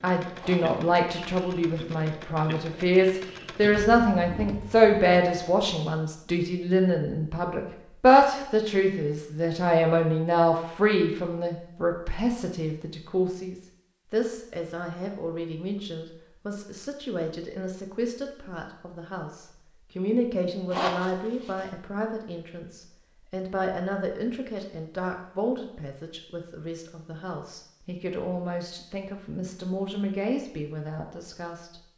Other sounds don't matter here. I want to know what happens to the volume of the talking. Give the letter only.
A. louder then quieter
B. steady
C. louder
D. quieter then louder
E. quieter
E.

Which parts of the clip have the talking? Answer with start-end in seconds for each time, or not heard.
0.0-31.8.